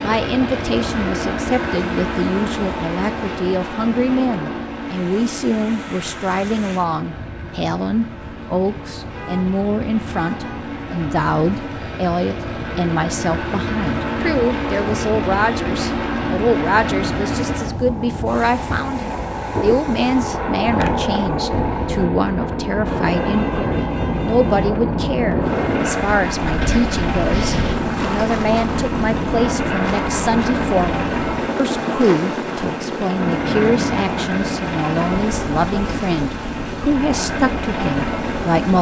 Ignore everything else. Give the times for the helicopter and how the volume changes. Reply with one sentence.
The helicopter can be heard from 0.0 to 38.7 s, at a steady volume.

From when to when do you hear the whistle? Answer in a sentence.
The whistle can't be heard in this clip.